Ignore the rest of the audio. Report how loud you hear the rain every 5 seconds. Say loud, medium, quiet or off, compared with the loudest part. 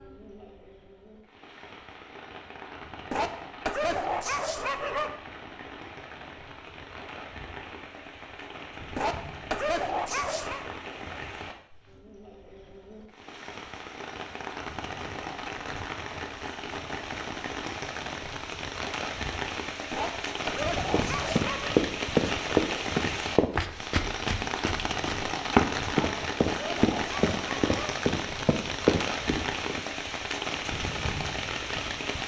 quiet, medium, medium, loud, loud, loud, loud.